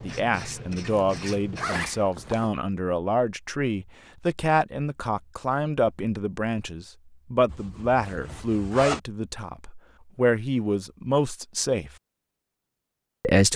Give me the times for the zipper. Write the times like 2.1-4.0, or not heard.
0.9-2.5, 7.5-9.0.